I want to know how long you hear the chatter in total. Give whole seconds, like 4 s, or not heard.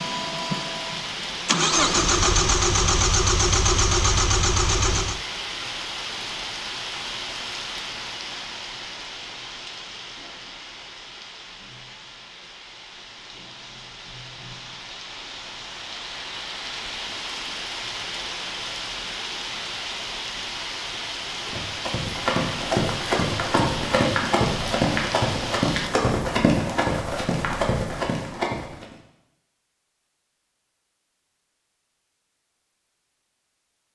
not heard.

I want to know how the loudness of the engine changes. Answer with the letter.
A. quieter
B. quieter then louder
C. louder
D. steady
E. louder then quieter
C.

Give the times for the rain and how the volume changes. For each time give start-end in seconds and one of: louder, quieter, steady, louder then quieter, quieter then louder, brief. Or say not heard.
0.0-25.9 quieter then louder.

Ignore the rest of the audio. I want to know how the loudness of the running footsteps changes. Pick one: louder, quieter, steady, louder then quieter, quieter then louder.
steady.